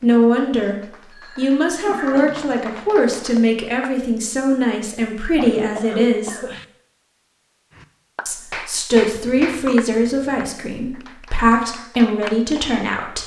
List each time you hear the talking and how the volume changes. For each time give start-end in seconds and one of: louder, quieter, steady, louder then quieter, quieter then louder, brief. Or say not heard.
0.0-0.8 brief
1.4-6.4 steady
8.2-13.2 quieter then louder.